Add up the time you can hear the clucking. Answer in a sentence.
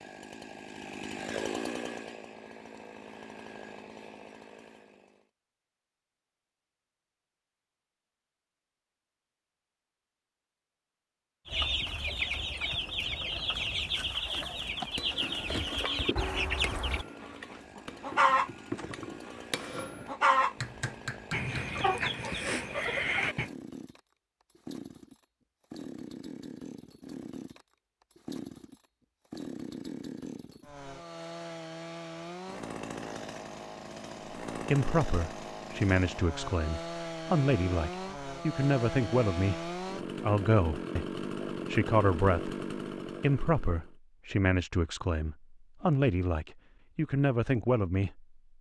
The clucking can be heard for 12 seconds in total.